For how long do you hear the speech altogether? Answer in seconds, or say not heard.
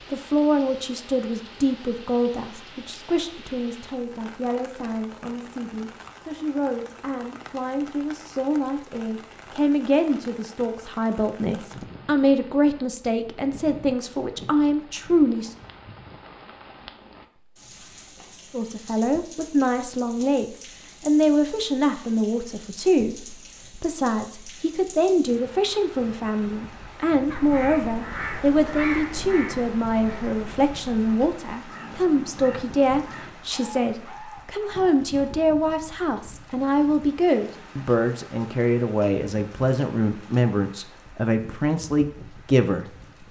40 s.